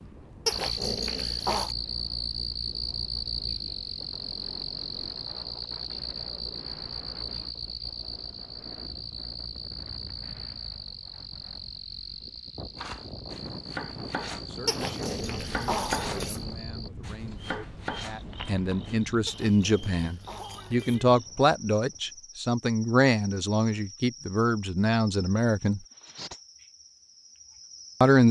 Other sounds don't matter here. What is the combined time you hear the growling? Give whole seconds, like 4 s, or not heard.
5 s.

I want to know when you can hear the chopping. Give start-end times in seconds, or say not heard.
12.8-19.0.